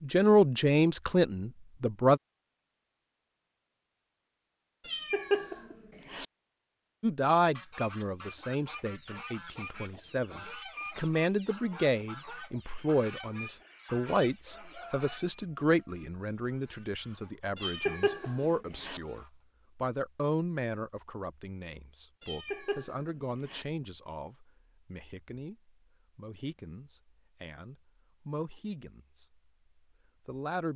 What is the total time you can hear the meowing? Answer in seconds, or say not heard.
4 s.